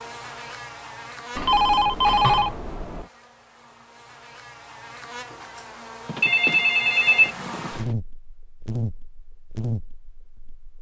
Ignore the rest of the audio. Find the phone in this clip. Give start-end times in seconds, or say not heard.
1.4-3.0, 6.0-8.0.